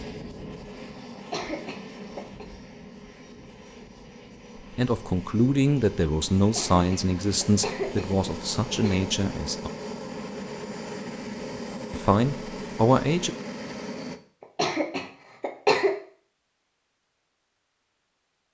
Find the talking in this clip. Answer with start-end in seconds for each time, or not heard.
4.8-9.7, 11.9-13.3.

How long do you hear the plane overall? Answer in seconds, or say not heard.
14 s.